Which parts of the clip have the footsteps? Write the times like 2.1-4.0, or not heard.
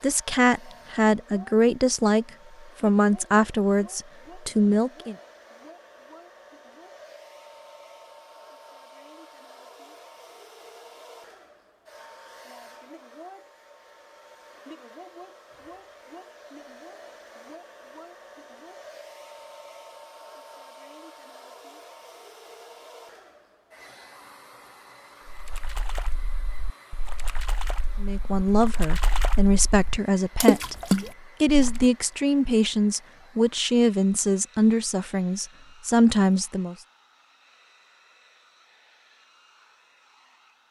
not heard.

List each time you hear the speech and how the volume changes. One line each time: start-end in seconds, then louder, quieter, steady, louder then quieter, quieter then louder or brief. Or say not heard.
0.0-5.2 steady
28.0-36.8 steady.